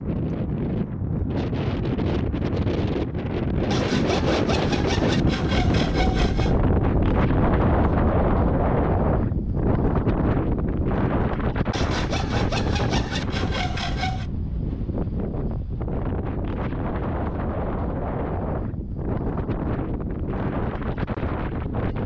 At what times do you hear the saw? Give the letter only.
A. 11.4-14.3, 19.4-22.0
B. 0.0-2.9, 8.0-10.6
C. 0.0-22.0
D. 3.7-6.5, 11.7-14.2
D.